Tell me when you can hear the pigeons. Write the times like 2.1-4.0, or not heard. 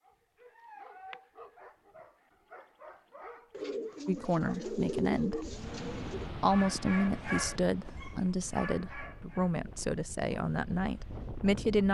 3.5-6.3.